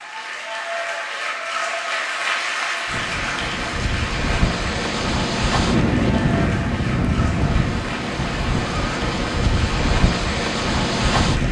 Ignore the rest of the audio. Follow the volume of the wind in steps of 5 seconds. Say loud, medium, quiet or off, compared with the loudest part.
medium, loud, loud.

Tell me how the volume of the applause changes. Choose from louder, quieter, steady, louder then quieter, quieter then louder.
quieter.